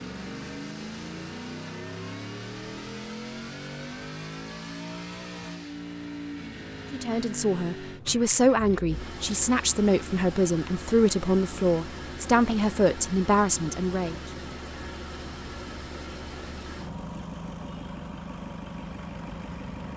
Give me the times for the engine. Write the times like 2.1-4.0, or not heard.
0.0-19.9.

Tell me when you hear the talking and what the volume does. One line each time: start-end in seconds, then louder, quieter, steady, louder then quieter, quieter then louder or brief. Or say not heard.
6.9-14.2 steady.